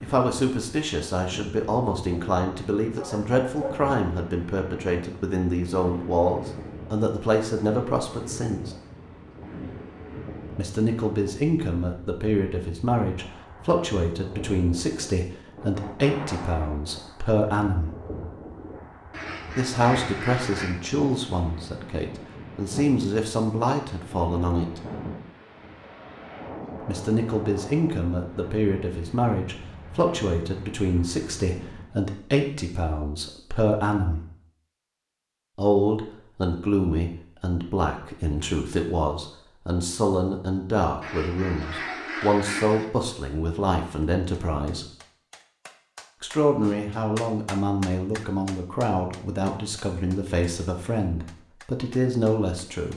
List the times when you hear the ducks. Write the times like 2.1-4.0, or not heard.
19.1-20.8, 41.0-42.9.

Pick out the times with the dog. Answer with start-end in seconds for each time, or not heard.
2.9-3.8.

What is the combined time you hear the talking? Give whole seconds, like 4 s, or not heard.
45 s.